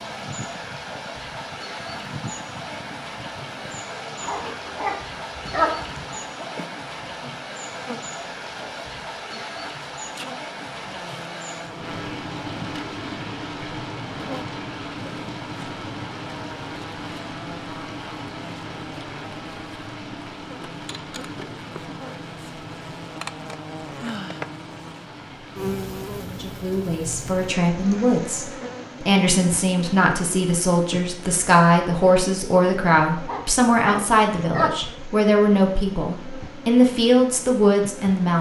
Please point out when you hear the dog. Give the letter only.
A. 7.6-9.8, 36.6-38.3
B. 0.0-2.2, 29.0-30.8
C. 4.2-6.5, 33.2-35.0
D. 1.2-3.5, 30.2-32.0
C.